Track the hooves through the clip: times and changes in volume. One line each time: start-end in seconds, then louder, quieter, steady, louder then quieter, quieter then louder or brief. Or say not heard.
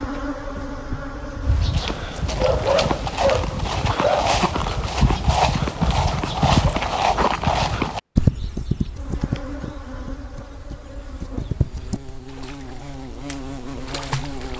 1.4-12.2 quieter.